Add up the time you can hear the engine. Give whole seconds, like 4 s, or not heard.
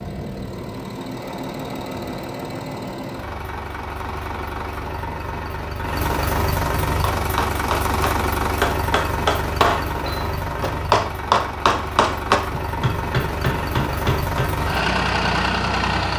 16 s.